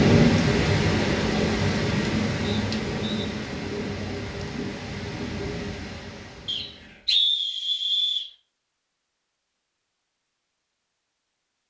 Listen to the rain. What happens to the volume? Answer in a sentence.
The loudness of the rain goes down.